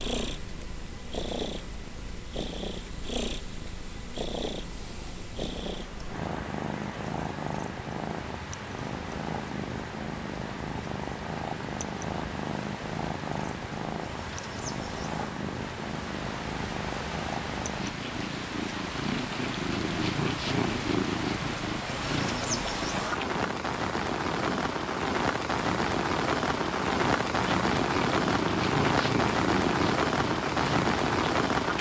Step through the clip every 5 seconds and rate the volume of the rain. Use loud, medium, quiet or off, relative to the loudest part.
quiet, quiet, quiet, medium, medium, loud, loud.